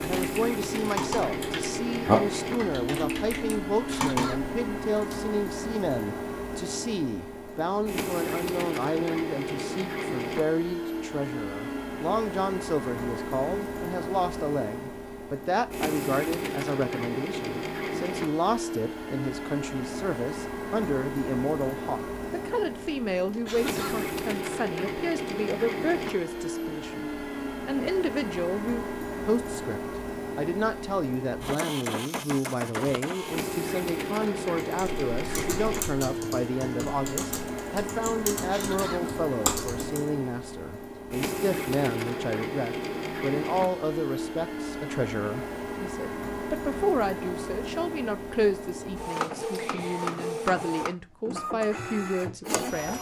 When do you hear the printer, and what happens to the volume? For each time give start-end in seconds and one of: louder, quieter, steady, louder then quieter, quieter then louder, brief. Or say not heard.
0.0-52.9 steady.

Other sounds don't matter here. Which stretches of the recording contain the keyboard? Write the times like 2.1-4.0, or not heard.
0.0-5.2, 34.6-40.1.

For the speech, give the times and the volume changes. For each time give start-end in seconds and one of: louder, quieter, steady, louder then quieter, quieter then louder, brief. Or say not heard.
0.0-52.9 steady.